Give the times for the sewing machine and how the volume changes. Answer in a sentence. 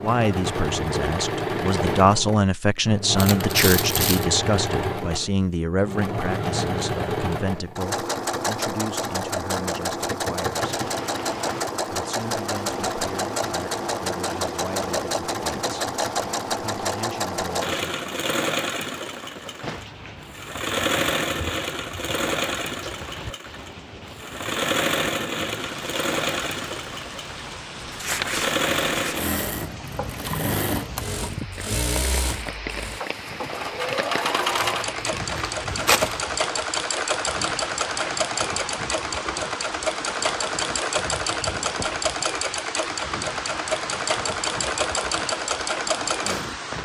The sewing machine can be heard from 0.0 to 46.6 s, at a steady volume.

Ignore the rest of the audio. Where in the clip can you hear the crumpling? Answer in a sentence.
The crumpling can be heard from 3.1 to 4.2 s, from 27.8 to 29.2 s and from 34.5 to 36.2 s.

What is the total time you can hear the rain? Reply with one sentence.
You can hear the rain for 36 seconds altogether.